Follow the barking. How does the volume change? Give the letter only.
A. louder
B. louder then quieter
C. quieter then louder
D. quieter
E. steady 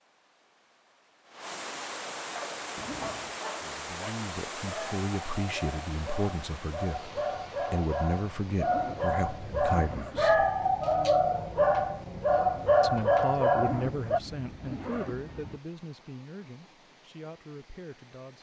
A.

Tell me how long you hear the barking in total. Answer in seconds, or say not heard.
12 s.